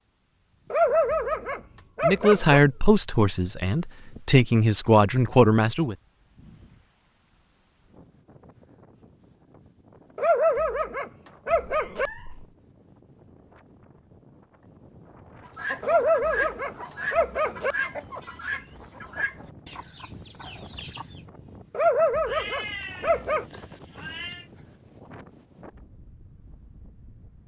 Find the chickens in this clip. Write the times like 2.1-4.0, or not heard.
15.4-21.2.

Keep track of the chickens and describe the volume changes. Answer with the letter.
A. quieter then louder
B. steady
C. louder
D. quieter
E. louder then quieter
D.